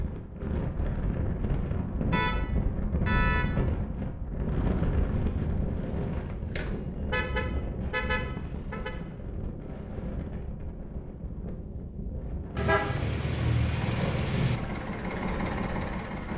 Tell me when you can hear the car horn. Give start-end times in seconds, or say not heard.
2.1-3.5, 6.2-8.9, 12.6-14.6.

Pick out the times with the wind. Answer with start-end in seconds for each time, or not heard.
0.0-16.3.